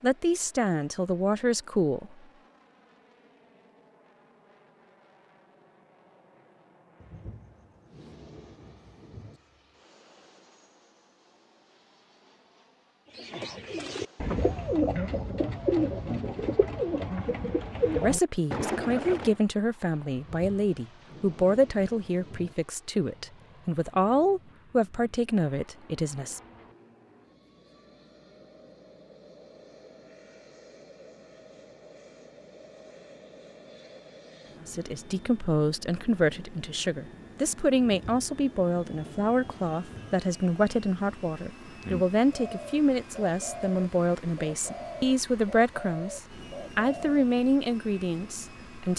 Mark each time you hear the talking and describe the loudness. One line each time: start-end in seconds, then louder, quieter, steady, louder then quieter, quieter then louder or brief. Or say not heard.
0.0-2.1 brief
17.9-26.4 steady
34.6-48.9 steady.